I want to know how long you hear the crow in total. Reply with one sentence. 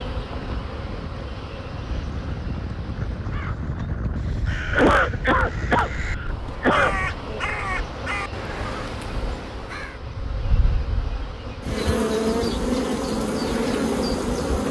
The crow can be heard for 7 seconds in total.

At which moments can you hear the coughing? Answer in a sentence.
The coughing can be heard from 4.7 to 7.0 s.